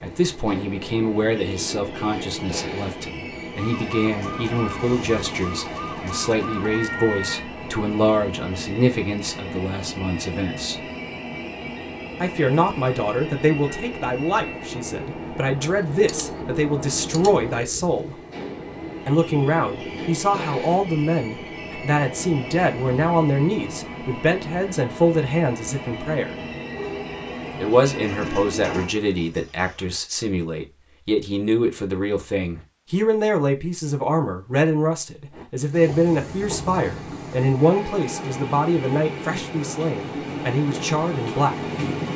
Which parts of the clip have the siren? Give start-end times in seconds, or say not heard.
3.5-7.5, 26.7-28.5.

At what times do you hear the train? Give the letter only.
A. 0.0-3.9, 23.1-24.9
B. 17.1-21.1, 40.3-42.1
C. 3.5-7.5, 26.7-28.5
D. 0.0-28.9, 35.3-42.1
D.